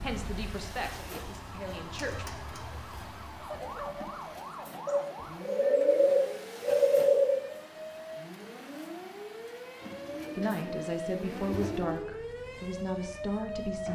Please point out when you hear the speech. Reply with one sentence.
The speech can be heard from 0.0 to 2.3 s and from 10.3 to 13.9 s.